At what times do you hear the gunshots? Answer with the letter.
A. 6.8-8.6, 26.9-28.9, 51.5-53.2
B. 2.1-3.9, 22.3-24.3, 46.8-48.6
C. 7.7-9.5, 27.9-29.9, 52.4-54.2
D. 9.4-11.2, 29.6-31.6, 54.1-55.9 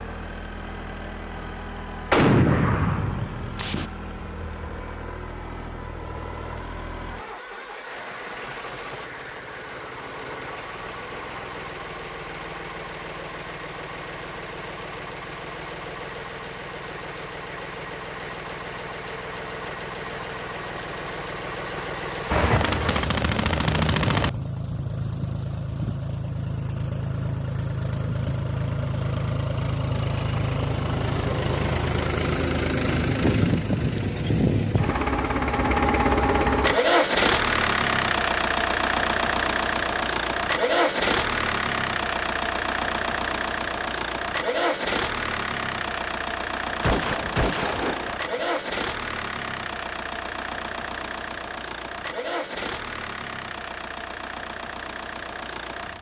B.